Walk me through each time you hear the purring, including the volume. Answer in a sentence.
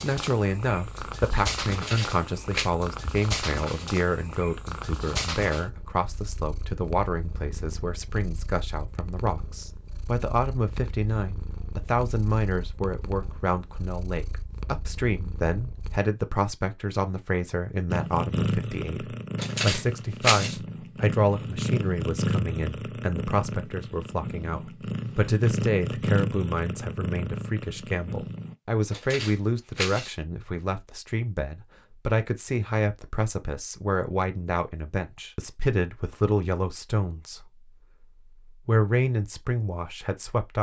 You can hear the purring from 0.0 to 16.0 s, getting quieter; and from 17.9 to 28.6 s, at a steady volume.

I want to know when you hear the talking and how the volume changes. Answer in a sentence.
You can hear the talking from 0.0 to 37.7 s, at a steady volume; and briefly from 38.5 to 40.5 s.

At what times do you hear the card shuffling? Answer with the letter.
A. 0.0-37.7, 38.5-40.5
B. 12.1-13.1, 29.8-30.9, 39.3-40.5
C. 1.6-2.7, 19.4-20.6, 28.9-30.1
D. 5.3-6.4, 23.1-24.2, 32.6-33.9
C.